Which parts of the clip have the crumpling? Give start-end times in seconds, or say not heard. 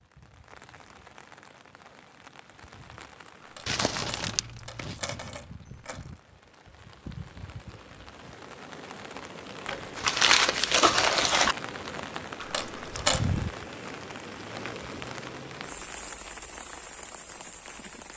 3.6-5.0, 9.7-11.6.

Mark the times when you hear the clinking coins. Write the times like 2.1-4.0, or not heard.
3.5-6.1, 12.4-13.4.